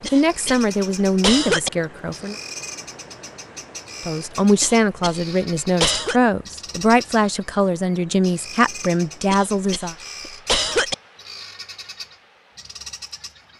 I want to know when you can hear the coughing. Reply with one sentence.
The coughing can be heard from 0.1 to 1.7 s, from 4.6 to 6.2 s and from 9.3 to 10.9 s.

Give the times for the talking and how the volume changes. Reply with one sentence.
You can hear the talking briefly from 0.0 to 2.4 s; and from 4.0 to 9.9 s, at a steady volume.